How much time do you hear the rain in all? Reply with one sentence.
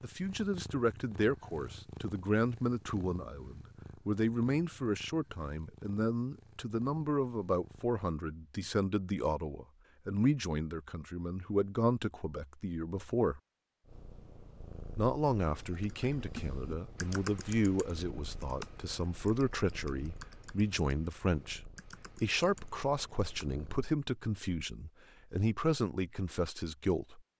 You can't hear the rain here.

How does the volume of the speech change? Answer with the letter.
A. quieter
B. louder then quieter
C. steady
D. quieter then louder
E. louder
C.